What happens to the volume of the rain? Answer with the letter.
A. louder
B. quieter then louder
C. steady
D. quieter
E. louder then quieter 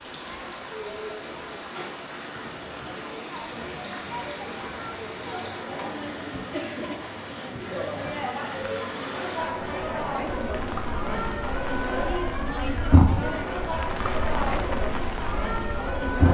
A.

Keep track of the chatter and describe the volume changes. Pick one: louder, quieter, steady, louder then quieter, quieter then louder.
louder.